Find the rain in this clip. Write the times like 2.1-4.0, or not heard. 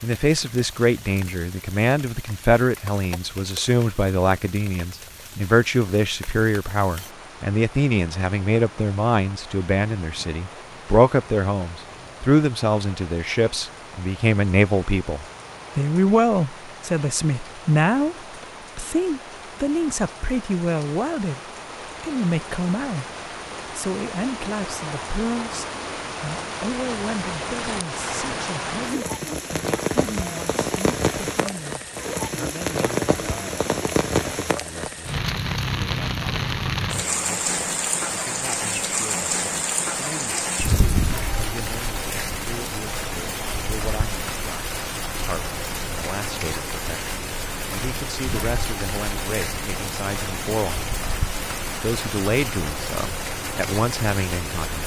0.0-54.8.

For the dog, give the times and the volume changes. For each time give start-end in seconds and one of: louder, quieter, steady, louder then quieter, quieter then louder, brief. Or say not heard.
not heard.